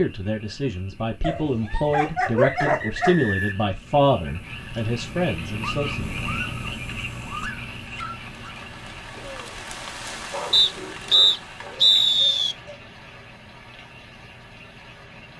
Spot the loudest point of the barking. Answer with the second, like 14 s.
3 s.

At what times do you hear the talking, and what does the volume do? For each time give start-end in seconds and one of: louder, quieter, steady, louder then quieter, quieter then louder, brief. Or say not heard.
0.0-6.1 louder then quieter.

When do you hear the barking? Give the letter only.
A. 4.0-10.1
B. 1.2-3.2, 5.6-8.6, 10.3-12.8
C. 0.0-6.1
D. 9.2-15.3
B.